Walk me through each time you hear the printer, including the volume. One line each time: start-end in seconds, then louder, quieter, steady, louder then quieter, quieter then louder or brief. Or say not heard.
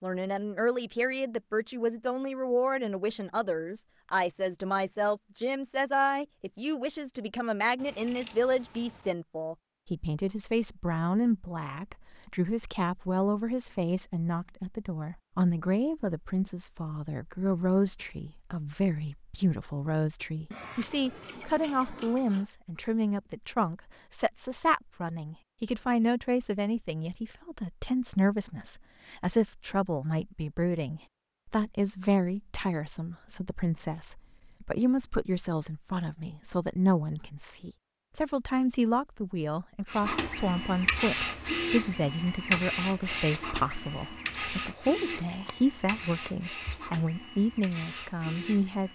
39.9-48.9 quieter.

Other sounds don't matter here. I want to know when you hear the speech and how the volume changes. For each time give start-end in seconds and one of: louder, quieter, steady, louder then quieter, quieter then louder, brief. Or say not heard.
0.0-48.9 steady.